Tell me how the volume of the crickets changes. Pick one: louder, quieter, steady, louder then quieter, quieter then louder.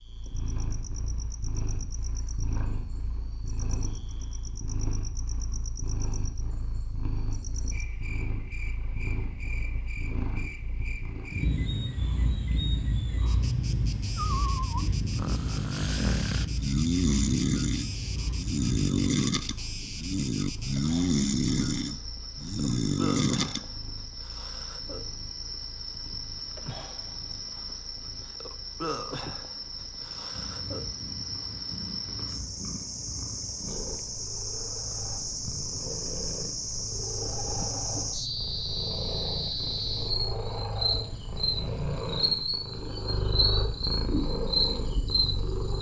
louder.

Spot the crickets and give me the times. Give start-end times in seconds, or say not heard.
0.0-45.7.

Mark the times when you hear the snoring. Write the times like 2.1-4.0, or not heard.
14.2-23.6.